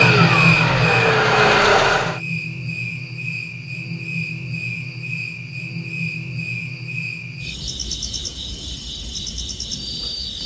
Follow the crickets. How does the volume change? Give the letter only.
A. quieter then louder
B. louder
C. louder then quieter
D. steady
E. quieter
E.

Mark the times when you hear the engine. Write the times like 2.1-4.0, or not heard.
0.0-2.1.